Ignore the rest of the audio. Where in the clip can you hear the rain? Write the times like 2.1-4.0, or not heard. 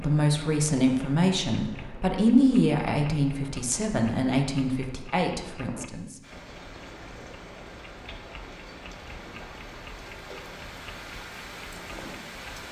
6.2-12.6.